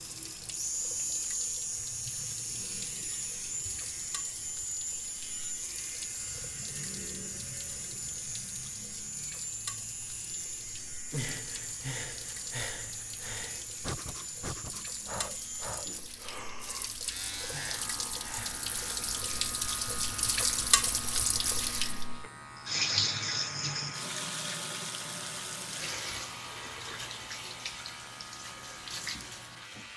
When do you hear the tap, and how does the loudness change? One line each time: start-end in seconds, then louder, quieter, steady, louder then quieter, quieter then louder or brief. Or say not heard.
0.0-29.9 louder then quieter.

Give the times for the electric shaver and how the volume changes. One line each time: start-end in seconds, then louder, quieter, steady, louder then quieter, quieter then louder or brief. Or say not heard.
0.0-29.9 quieter.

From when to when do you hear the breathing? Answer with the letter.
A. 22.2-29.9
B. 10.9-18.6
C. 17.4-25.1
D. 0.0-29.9
B.